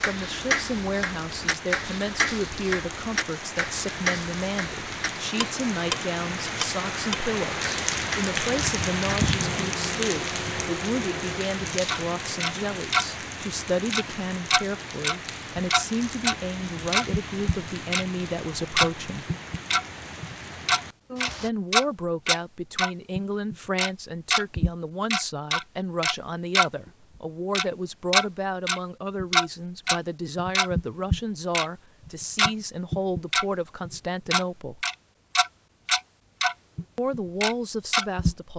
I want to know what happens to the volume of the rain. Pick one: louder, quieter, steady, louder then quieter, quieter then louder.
louder then quieter.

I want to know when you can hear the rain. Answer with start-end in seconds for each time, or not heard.
0.0-21.5.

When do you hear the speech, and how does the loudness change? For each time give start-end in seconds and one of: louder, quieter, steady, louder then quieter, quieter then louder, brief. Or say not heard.
0.1-19.2 steady
21.4-34.9 steady
37.0-38.5 brief.